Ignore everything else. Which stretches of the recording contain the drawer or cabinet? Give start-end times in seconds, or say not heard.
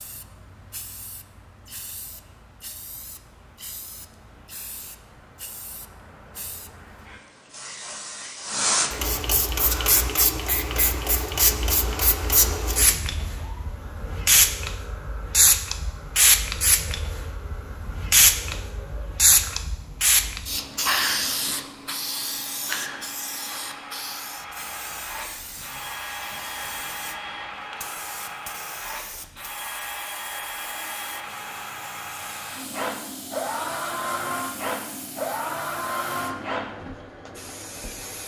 not heard.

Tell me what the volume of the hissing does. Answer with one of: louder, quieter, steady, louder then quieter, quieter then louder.
louder then quieter.